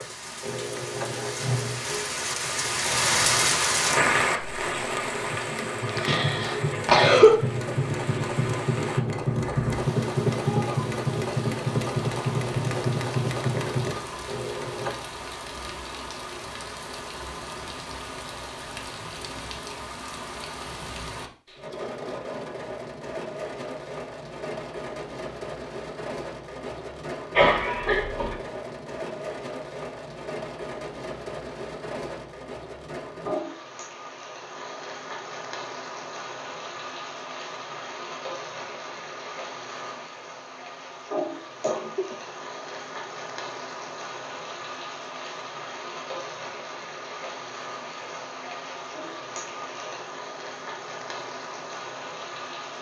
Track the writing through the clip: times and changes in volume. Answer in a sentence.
You can't hear the writing here.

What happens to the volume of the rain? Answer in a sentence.
The loudness of the rain goes down.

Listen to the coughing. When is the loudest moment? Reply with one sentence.
The volume of the coughing peaks at 7 seconds.